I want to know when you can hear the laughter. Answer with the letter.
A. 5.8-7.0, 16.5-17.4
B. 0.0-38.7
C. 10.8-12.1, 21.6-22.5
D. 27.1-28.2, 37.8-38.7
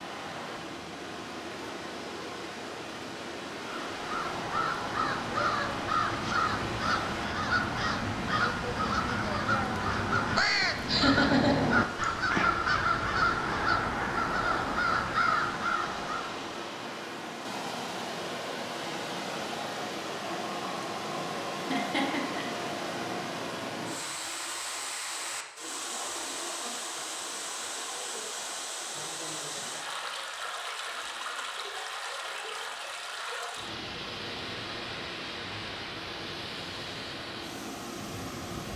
C.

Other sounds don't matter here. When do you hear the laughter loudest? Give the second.
11 s.